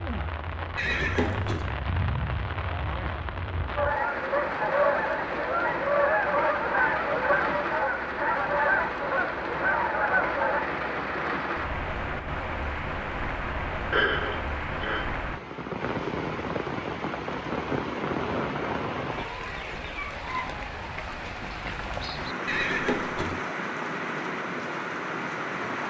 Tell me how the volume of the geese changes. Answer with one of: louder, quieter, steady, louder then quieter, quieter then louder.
steady.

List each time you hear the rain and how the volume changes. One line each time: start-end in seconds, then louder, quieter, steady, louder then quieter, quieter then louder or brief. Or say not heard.
0.0-25.8 steady.